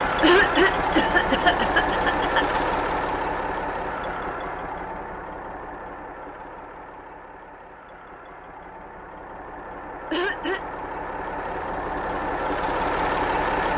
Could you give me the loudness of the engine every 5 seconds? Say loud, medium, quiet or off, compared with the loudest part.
loud, quiet, loud.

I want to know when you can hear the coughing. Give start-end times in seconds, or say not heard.
0.2-2.6, 10.1-10.6.